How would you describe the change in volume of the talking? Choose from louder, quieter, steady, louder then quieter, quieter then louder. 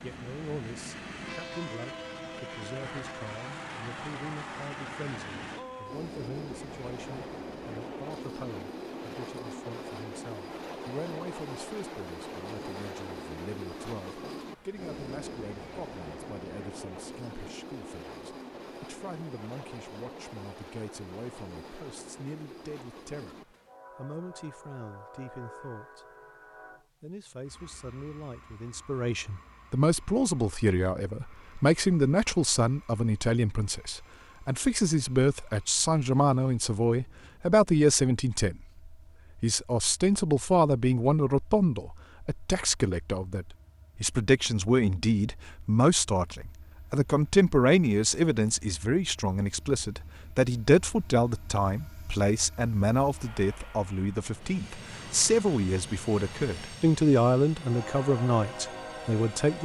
louder.